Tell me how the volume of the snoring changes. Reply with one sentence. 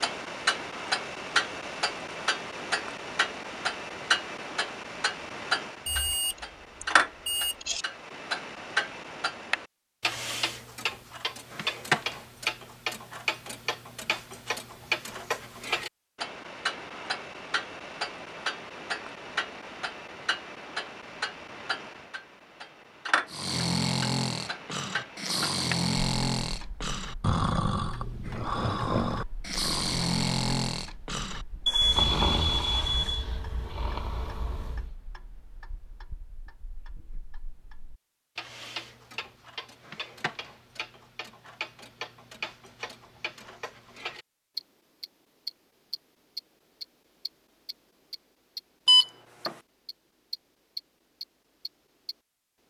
The loudness of the snoring goes down.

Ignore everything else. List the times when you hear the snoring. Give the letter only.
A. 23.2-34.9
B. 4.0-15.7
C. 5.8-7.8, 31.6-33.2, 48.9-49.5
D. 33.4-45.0
A.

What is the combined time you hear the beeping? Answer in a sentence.
You can hear the beeping for 4 seconds altogether.